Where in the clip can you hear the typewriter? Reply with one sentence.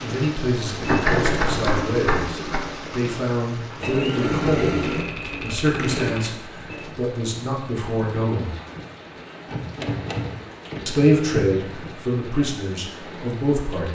The typewriter can be heard from 0.8 to 2.6 s, from 4.8 to 6.4 s and from 9.4 to 11.5 s.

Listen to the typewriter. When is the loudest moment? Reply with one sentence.
The volume of the typewriter peaks at 1 second.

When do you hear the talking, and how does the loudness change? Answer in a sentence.
You can hear the talking from 0.0 to 8.5 s, at a steady volume; and briefly from 10.8 to 13.8 s.